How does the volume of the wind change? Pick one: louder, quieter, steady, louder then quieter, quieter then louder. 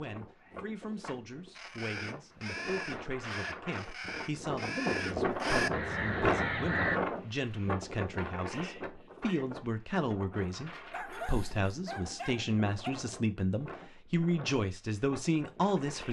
louder then quieter.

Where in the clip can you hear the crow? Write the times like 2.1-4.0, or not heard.
1.6-7.0.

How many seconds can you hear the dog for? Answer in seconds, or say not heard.
2 s.